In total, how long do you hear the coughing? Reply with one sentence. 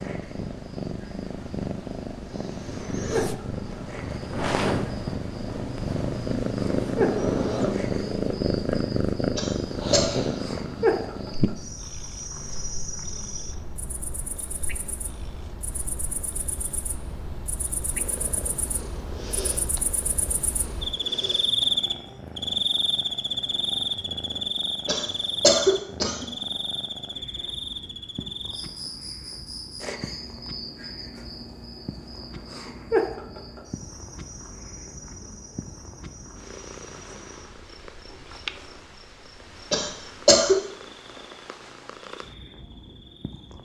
You can hear the coughing for 3 seconds altogether.